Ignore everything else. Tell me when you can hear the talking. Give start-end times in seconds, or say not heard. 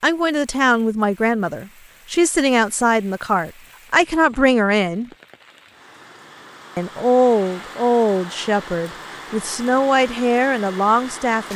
0.0-5.1, 6.8-11.5.